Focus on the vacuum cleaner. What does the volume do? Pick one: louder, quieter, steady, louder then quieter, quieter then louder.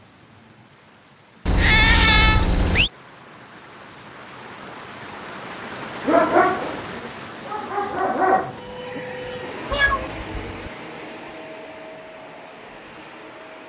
quieter.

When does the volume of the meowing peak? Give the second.
2 s.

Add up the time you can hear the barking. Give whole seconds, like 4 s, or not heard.
3 s.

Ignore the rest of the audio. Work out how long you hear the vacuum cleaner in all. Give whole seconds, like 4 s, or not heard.
5 s.